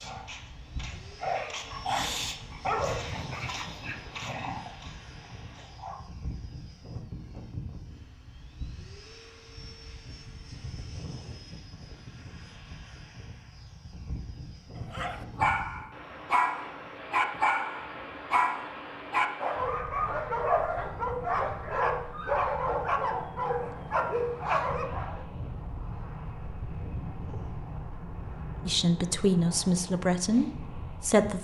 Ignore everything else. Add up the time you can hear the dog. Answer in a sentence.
You can hear the dog for 16 seconds altogether.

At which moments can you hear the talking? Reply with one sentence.
You can hear the talking from 28.6 to 31.3 s.